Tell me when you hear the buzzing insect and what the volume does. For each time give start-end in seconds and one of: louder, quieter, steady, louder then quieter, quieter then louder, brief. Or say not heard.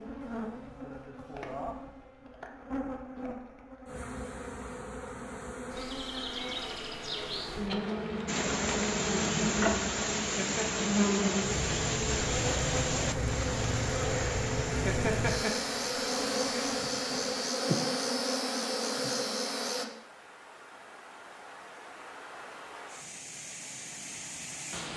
0.0-19.9 louder.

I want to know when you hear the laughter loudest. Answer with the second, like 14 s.
15 s.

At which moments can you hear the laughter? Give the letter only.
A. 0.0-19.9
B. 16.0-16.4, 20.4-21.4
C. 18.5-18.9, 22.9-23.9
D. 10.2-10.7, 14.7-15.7
D.